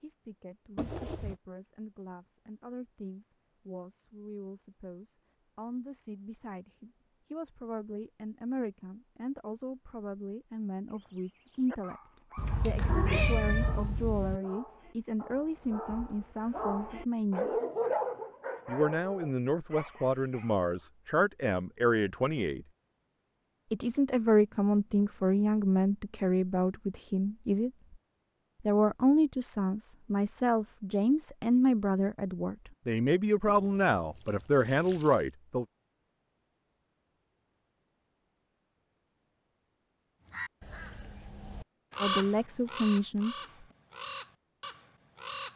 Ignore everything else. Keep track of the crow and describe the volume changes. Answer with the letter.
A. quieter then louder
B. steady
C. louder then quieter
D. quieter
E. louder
C.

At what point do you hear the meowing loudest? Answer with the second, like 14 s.
13 s.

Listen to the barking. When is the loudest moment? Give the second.
18 s.